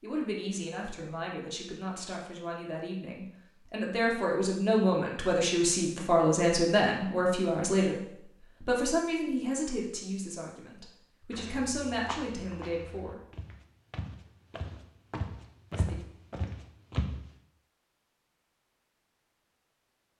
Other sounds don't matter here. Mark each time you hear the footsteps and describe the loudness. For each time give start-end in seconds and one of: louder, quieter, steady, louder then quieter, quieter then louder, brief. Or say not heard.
11.3-17.2 quieter then louder.